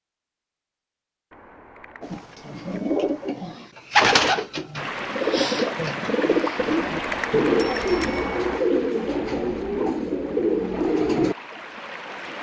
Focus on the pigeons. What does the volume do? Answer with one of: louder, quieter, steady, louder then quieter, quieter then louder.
steady.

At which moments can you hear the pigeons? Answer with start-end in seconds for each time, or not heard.
2.0-11.3.